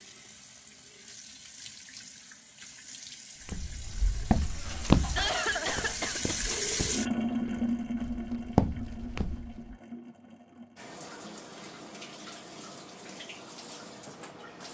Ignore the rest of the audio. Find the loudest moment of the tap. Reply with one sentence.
The loudest moment of the tap is at 7 seconds.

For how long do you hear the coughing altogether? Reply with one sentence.
You can hear the coughing for 2 seconds altogether.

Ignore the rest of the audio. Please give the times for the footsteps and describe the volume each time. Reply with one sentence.
You can hear the footsteps from 3.5 to 9.5 s, getting quieter then louder.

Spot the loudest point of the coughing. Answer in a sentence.
The loudest moment of the coughing is at 5 seconds.